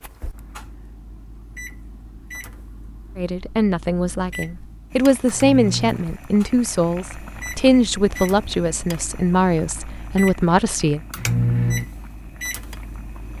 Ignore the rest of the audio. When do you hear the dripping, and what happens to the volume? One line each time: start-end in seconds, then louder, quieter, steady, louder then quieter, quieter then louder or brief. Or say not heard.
not heard.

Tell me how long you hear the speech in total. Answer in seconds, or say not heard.
8 s.